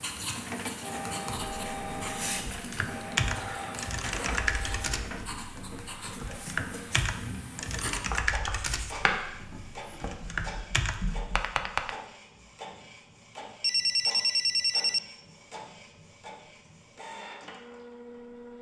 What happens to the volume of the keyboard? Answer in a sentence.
The loudness of the keyboard stays about the same.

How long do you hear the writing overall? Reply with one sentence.
The writing can be heard for 12 seconds in total.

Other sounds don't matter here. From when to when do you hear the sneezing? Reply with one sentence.
The sneezing can't be heard in this clip.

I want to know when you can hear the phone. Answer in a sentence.
The phone can be heard from 13.6 to 15.0 s.